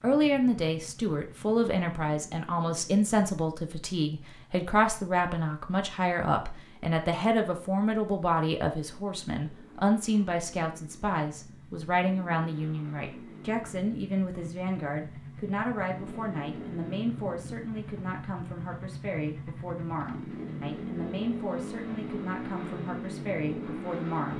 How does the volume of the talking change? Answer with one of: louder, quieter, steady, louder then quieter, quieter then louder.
quieter.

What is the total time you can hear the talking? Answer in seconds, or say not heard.
24 s.